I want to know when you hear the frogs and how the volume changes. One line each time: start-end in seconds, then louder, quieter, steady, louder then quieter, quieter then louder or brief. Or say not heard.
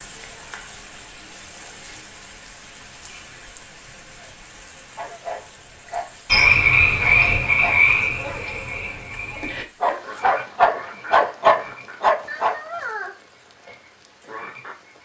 6.2-14.9 quieter.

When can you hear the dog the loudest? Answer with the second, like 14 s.
11 s.